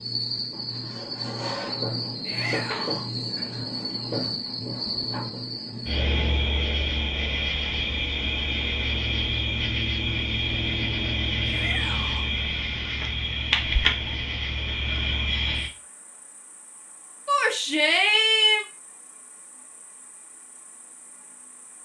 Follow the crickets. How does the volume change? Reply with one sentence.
The loudness of the crickets goes down.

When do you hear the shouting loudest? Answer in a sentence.
The loudest moment of the shouting is at 18 seconds.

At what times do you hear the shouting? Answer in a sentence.
You can hear the shouting from 2.2 to 3.1 s, from 11.4 to 12.3 s and from 17.2 to 18.6 s.